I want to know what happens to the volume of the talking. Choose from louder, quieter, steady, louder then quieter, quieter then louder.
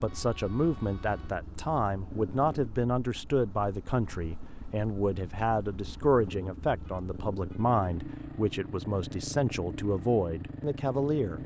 steady.